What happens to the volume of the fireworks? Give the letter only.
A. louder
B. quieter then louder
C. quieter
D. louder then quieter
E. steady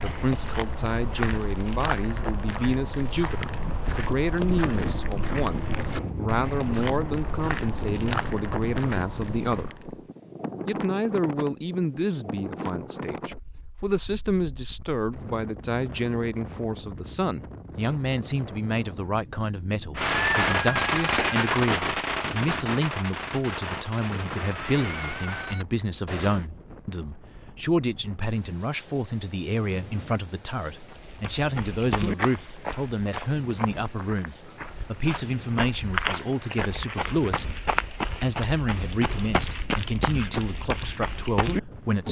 C.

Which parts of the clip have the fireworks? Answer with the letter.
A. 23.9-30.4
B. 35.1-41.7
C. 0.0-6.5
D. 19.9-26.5
D.